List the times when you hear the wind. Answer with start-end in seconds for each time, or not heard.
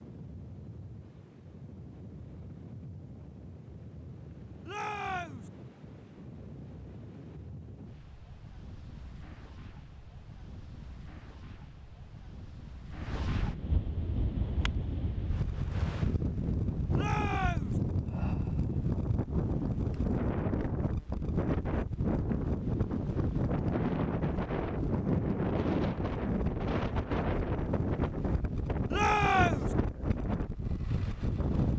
0.0-31.7.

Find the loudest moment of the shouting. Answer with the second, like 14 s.
29 s.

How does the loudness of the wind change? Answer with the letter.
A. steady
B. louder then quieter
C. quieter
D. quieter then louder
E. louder
E.